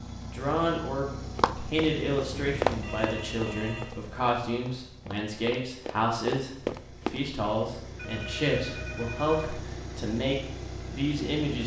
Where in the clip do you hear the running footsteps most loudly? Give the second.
3 s.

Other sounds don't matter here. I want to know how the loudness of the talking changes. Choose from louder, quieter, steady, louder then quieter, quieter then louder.
steady.